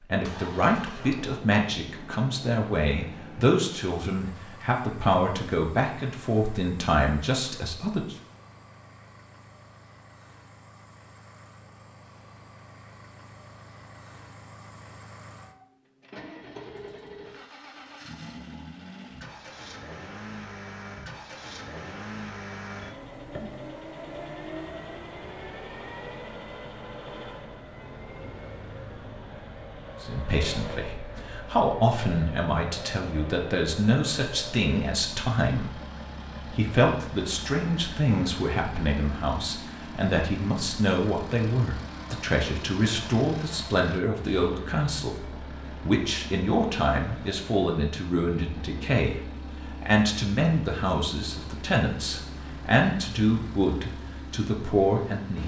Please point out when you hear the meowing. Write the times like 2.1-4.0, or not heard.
22.8-23.6.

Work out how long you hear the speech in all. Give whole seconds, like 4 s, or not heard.
33 s.